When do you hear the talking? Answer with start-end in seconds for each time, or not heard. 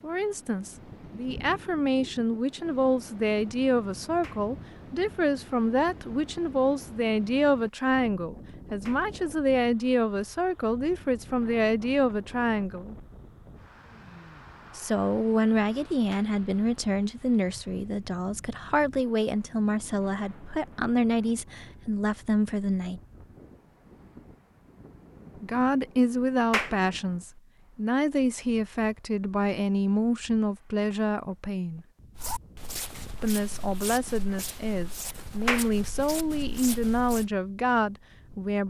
0.0-12.9, 14.8-23.0, 25.4-31.9, 33.2-38.6.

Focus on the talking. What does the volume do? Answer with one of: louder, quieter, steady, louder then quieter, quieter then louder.
steady.